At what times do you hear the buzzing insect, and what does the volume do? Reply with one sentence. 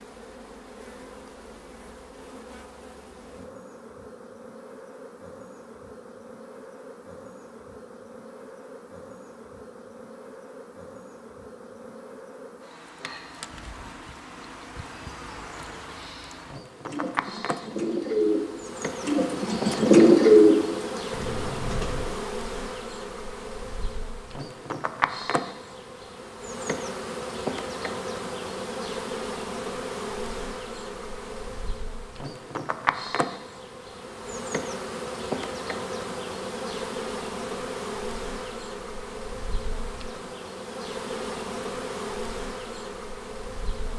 The buzzing insect can be heard from 0.0 to 43.9 s, getting louder.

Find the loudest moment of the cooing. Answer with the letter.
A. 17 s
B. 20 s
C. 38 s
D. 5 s
B.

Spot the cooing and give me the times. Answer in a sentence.
You can hear the cooing from 16.9 to 22.2 s.